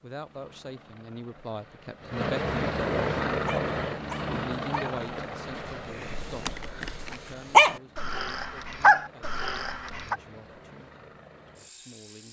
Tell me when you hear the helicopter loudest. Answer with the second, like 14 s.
3 s.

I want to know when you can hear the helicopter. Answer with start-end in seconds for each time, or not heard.
0.0-12.2.